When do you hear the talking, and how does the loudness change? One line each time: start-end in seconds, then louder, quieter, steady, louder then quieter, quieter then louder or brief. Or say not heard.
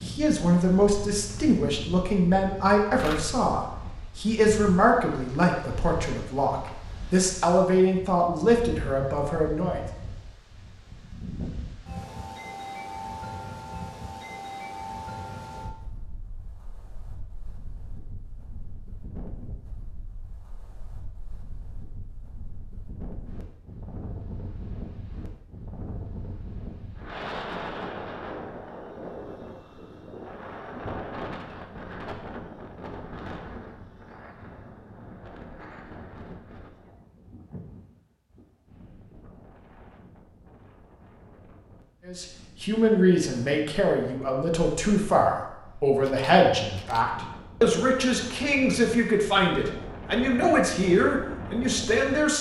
0.0-9.8 steady
42.0-52.3 steady.